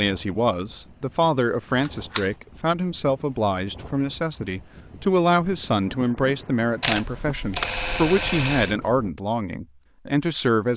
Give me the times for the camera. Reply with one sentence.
The camera can be heard from 1.8 to 2.3 s and from 6.8 to 8.8 s.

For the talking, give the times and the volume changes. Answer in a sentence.
The talking can be heard from 0.0 to 10.7 s, at a steady volume.